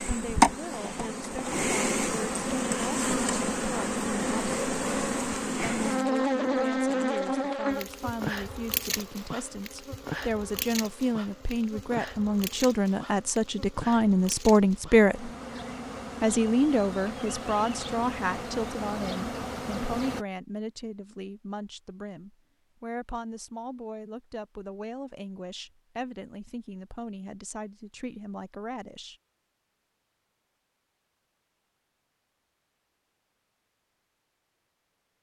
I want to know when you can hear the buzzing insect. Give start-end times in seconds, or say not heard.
0.0-20.2.